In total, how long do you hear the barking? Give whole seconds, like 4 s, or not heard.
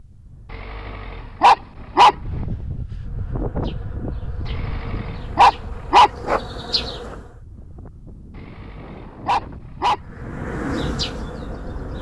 5 s.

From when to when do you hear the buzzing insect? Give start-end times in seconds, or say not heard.
3.0-7.3, 10.1-11.9.